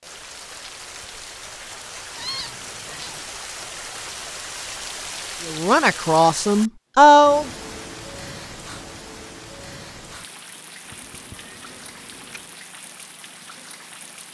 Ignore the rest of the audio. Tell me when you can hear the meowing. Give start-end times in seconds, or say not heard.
2.1-3.2, 10.8-12.6.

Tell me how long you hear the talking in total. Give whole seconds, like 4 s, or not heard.
2 s.